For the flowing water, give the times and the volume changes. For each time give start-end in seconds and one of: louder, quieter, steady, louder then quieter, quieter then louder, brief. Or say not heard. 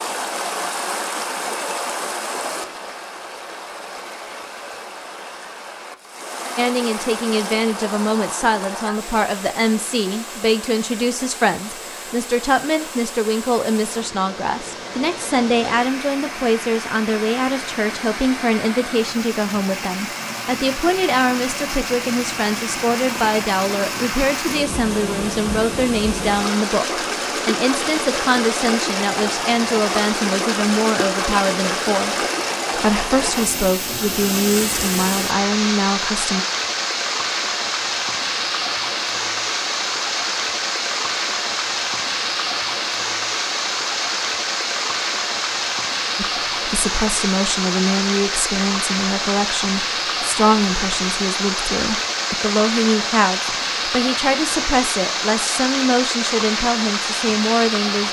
0.0-58.0 louder.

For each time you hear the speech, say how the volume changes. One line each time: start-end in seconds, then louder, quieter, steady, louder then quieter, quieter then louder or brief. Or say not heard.
6.5-36.5 steady
46.1-58.0 steady.